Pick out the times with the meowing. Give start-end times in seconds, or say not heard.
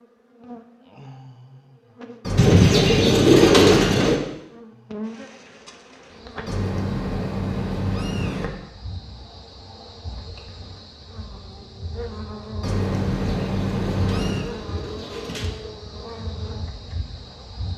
2.2-4.1, 6.5-8.5, 12.6-14.5.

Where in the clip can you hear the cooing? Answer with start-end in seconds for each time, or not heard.
2.4-4.2, 13.2-15.5.